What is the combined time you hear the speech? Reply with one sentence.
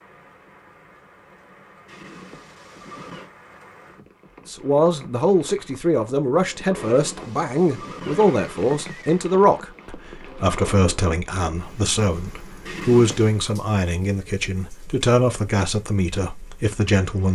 The speech can be heard for 13 seconds in total.